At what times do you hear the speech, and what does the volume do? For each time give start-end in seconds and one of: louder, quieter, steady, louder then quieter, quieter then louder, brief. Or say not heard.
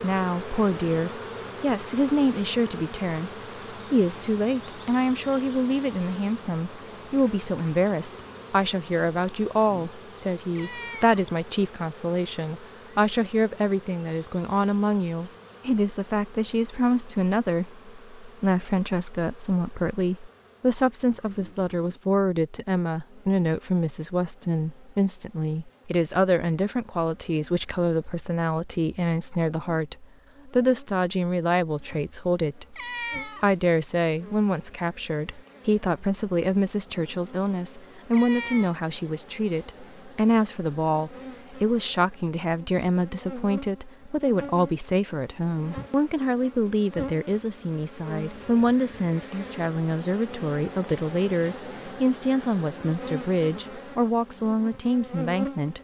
0.0-55.7 steady.